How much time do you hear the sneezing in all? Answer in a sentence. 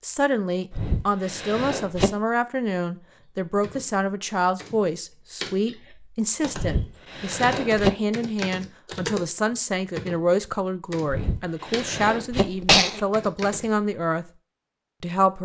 The sneezing can be heard for 5 seconds in total.